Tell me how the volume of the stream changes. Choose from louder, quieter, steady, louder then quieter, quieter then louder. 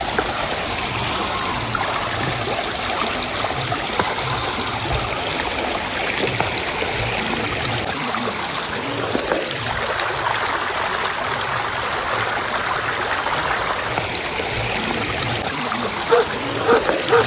steady.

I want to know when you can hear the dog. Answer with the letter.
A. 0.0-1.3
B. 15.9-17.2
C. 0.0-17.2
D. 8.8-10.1
B.